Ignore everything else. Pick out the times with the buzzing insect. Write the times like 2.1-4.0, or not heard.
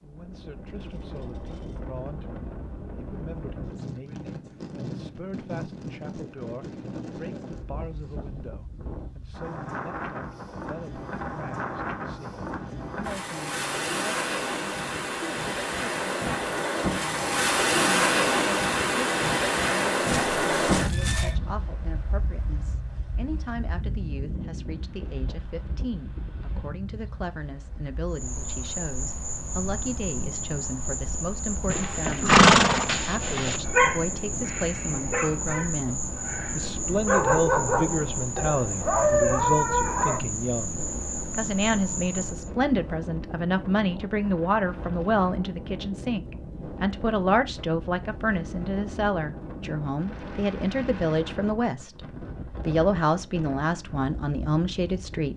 28.1-42.5.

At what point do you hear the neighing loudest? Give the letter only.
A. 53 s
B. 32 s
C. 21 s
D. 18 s
B.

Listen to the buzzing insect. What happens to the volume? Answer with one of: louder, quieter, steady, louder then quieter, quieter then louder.
steady.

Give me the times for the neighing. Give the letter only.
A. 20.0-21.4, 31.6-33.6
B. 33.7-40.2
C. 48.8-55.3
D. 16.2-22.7
A.